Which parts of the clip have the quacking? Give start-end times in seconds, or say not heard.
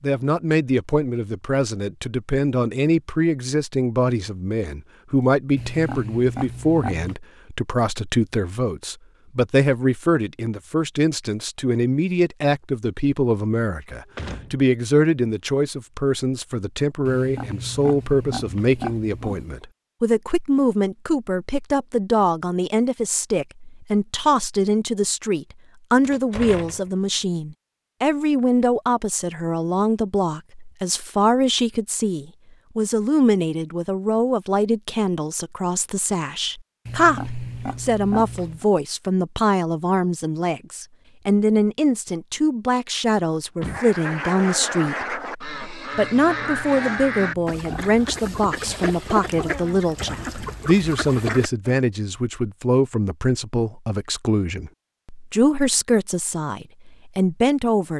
43.6-51.8.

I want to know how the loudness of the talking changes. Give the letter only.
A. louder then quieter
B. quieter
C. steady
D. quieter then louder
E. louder
C.